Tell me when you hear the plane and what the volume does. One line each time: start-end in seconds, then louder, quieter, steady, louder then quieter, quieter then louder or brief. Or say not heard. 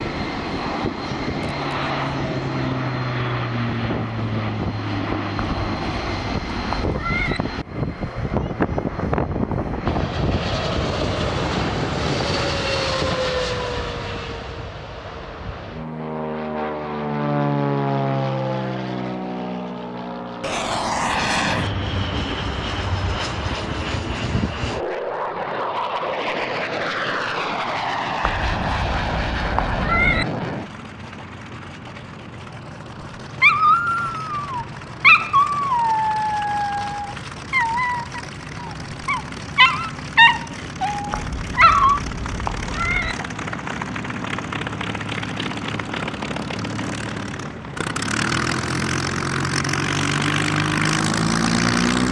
0.0-52.0 quieter then louder.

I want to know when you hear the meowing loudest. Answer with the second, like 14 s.
30 s.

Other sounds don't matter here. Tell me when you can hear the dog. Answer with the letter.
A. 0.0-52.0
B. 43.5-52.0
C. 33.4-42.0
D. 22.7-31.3
C.